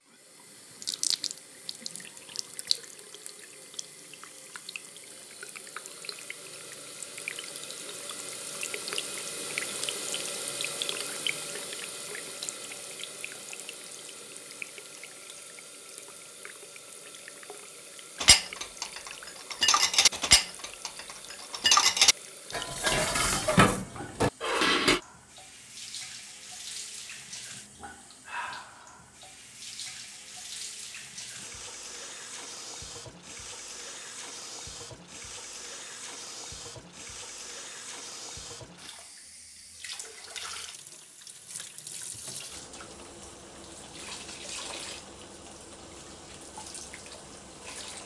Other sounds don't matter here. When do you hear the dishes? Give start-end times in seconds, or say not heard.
18.2-25.0.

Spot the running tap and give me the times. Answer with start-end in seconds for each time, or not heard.
0.0-48.0.